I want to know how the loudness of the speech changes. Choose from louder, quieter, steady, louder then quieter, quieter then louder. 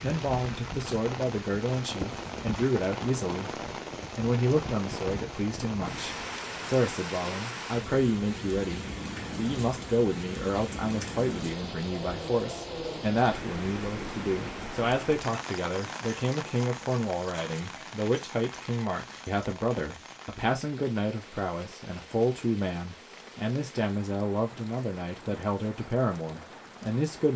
steady.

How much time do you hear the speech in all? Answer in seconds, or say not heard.
27 s.